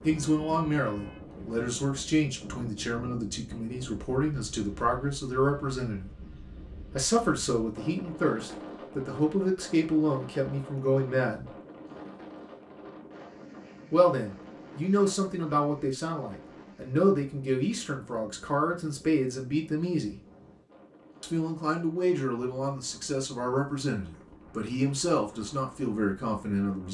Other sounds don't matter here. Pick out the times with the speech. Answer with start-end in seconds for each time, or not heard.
0.0-6.1, 6.9-11.6, 13.9-20.1, 21.2-26.9.